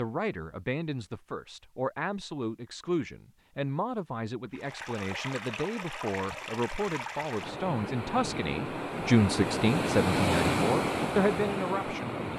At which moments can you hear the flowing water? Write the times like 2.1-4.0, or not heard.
4.5-12.3.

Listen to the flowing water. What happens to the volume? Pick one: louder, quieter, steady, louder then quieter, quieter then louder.
louder.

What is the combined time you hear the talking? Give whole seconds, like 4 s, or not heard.
12 s.